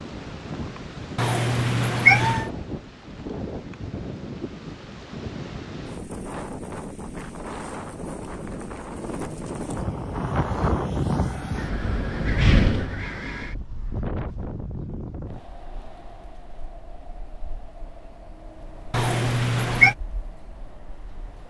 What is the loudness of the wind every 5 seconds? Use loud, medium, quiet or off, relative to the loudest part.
medium, medium, loud, quiet, quiet.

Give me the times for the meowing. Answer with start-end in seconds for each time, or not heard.
1.1-2.5, 18.9-19.9.